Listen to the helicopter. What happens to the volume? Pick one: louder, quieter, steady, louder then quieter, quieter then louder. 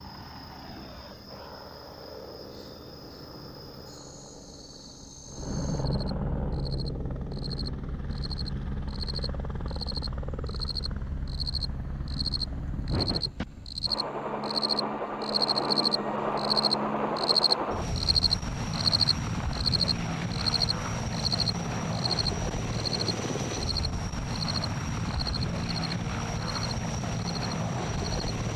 louder.